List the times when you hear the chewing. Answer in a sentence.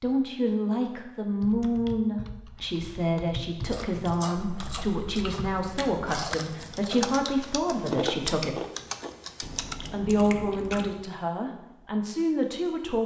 The chewing can be heard from 3.7 to 11.1 s.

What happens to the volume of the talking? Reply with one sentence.
The volume of the talking stays about the same.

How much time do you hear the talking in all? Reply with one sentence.
The talking can be heard for 12 seconds in total.